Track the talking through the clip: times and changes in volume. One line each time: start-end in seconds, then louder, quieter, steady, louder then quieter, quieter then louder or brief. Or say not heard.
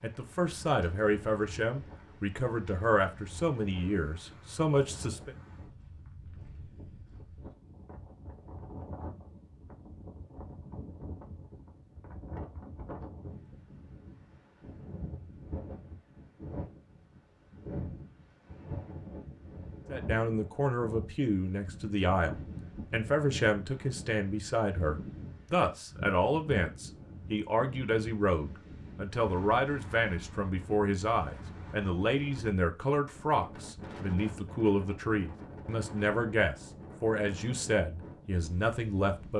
0.0-5.3 steady
19.9-39.3 steady.